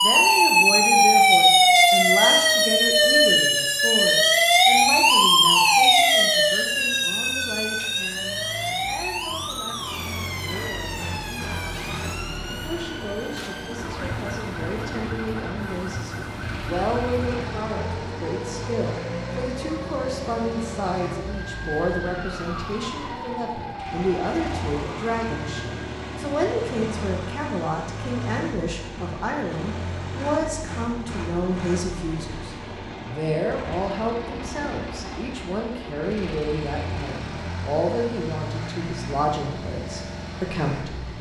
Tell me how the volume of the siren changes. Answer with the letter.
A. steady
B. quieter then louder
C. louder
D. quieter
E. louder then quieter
D.